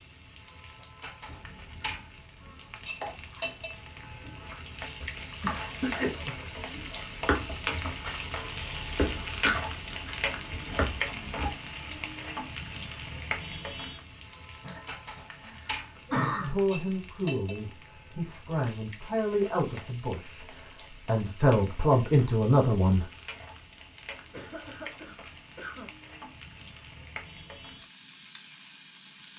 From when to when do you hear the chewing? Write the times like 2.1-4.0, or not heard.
1.2-11.6.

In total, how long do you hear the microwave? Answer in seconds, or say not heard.
not heard.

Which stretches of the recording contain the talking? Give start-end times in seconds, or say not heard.
16.3-23.1.